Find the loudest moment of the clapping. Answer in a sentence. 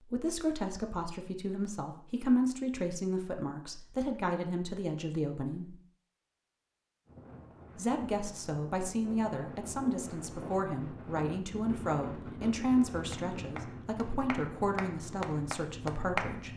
The loudest moment of the clapping is at 16 seconds.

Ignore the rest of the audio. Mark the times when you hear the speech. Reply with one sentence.
You can hear the speech from 0.0 to 5.8 s and from 7.8 to 16.5 s.